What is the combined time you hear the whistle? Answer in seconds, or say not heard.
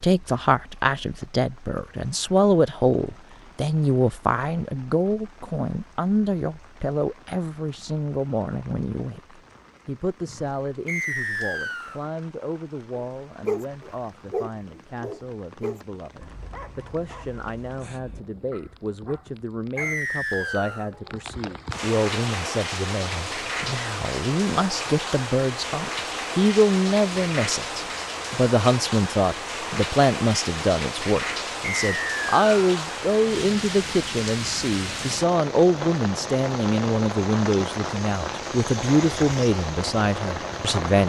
3 s.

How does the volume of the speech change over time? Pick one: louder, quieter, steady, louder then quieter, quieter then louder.
quieter then louder.